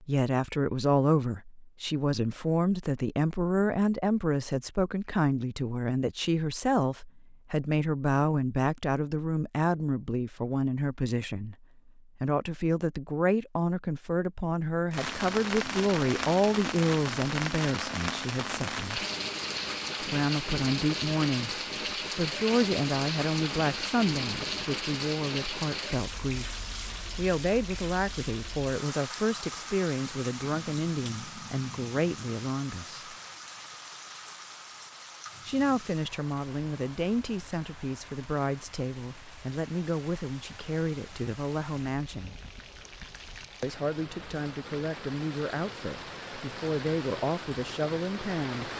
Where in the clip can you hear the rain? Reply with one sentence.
You can hear the rain from 14.9 to 48.7 s.